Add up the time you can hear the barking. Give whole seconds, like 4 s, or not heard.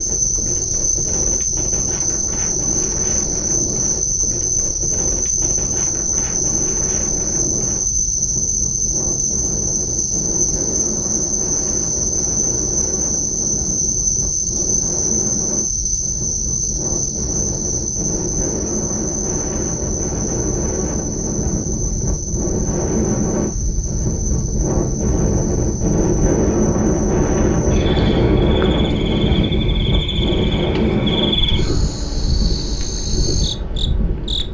not heard.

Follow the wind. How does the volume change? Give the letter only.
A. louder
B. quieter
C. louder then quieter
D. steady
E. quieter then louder
A.